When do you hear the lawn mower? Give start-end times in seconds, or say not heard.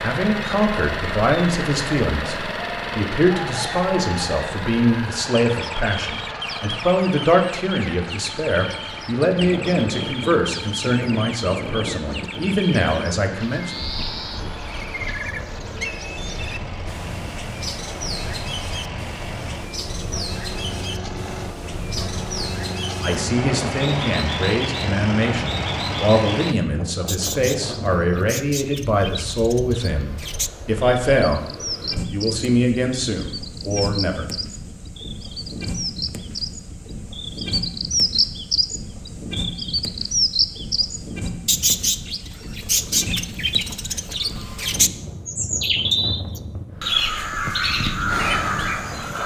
0.0-26.6.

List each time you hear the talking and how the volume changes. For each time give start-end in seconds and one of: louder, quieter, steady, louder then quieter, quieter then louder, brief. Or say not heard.
0.0-13.8 steady
23.0-31.5 steady
32.1-34.3 brief.